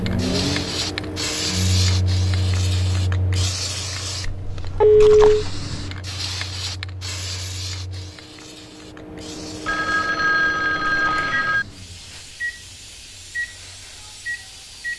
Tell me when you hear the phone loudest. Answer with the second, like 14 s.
5 s.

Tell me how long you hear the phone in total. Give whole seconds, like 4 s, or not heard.
3 s.